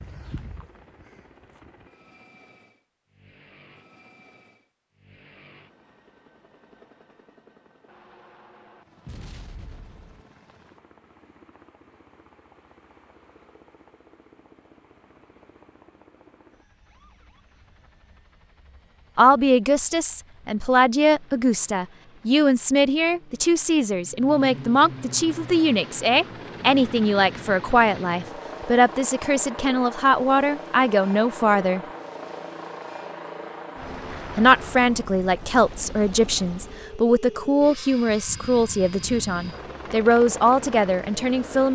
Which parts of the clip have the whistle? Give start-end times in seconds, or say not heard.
not heard.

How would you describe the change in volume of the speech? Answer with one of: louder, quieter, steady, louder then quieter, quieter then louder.
steady.